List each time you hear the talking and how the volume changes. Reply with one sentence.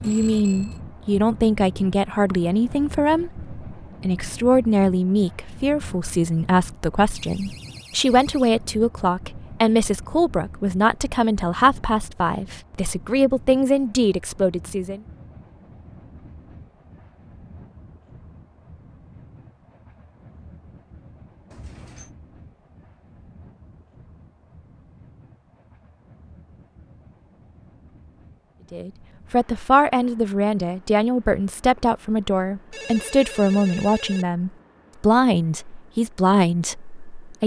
The talking can be heard from 0.0 to 15.0 s, at a steady volume; and from 28.7 to 37.4 s, at a steady volume.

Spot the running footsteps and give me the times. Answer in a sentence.
The running footsteps can't be heard in this clip.